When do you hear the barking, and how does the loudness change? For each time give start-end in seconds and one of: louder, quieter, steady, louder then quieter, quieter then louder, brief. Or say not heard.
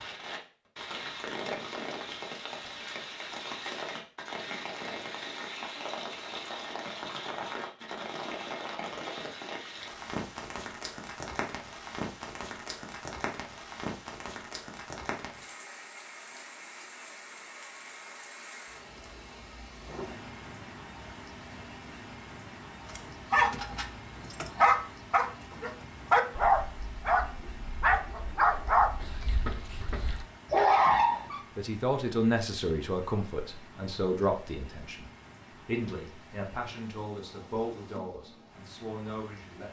22.9-31.4 steady.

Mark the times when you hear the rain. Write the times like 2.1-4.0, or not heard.
0.0-39.6.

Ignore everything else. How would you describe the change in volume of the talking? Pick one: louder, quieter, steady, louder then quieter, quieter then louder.
quieter.